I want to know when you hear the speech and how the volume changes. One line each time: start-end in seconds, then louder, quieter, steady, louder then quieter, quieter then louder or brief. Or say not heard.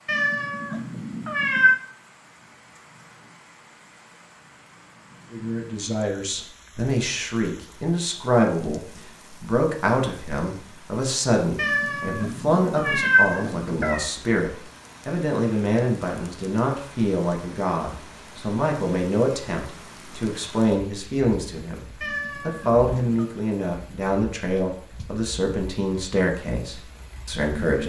5.3-27.8 steady.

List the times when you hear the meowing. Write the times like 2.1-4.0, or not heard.
0.1-1.8, 11.6-14.1, 22.0-23.2.